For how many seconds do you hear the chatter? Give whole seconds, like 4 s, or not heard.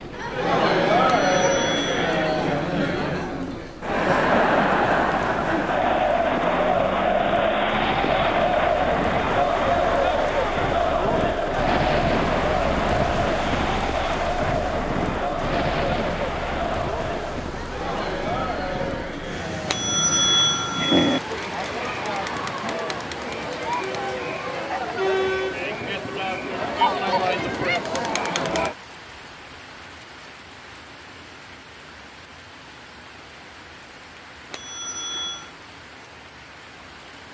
29 s.